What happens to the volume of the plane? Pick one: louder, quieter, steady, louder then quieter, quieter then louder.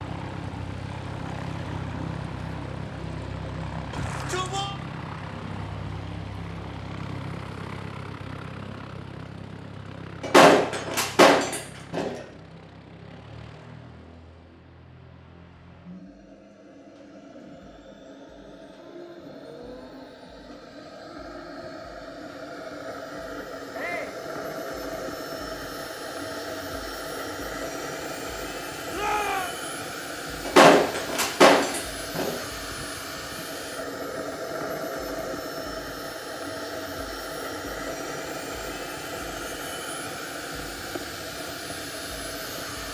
quieter then louder.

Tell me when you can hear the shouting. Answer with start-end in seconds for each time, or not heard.
3.9-4.8, 23.7-24.2, 28.9-29.5.